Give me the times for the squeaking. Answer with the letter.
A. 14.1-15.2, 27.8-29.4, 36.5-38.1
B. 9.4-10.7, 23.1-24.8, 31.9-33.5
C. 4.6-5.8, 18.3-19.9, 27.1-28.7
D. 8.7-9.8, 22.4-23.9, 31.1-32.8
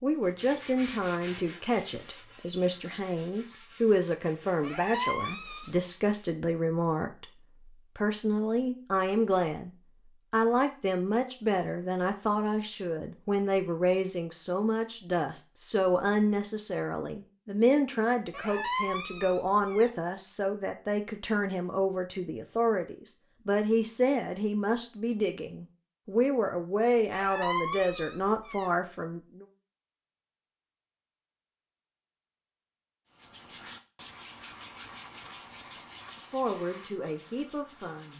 C.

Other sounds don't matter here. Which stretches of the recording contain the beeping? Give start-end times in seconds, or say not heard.
not heard.